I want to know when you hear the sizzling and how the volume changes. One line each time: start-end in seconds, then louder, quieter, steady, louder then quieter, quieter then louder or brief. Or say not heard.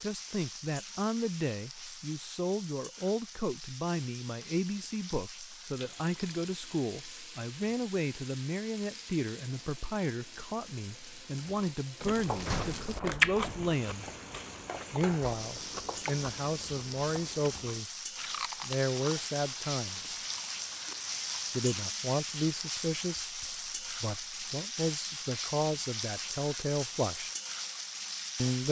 0.0-28.6 louder.